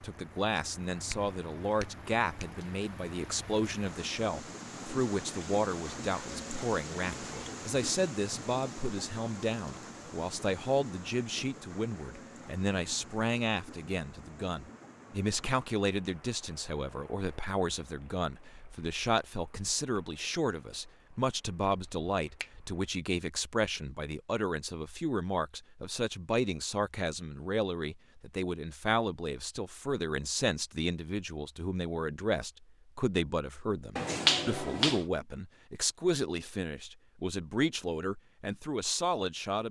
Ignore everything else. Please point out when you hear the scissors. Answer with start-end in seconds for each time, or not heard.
not heard.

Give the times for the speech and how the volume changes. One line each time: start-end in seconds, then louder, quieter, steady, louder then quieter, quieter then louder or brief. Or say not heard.
0.0-39.6 steady.